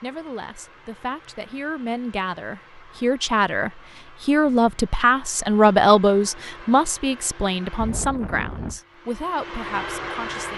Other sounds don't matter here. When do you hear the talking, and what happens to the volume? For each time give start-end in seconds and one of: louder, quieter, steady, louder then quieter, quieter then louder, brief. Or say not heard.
0.0-10.5 louder then quieter.